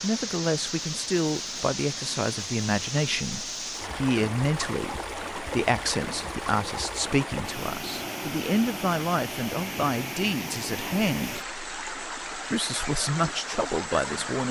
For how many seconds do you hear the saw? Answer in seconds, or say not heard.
not heard.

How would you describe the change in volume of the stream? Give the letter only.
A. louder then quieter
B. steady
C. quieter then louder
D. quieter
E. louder
B.